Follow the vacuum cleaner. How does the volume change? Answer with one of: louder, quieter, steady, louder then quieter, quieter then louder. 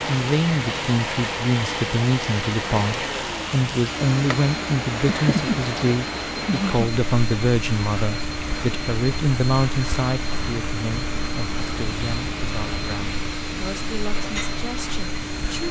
steady.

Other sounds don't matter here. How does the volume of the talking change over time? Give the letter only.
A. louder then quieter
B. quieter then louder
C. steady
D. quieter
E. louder
D.